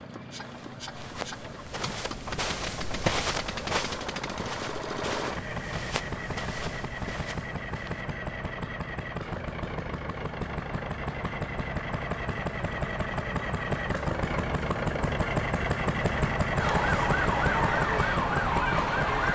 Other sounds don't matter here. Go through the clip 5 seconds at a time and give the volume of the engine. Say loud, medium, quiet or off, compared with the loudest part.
medium, medium, loud, loud.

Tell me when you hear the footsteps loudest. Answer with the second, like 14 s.
3 s.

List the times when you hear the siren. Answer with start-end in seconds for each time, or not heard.
16.6-19.2.